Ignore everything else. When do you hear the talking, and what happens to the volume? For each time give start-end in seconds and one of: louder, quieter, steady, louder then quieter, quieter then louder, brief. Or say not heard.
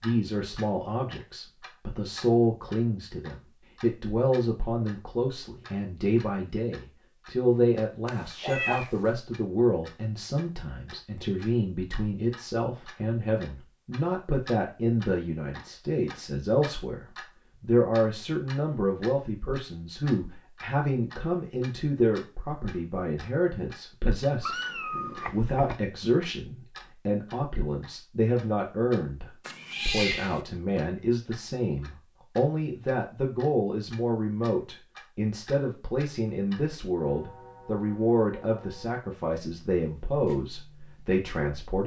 0.0-41.8 steady.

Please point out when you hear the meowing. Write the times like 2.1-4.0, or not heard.
8.1-9.1, 24.4-25.8, 29.4-30.4.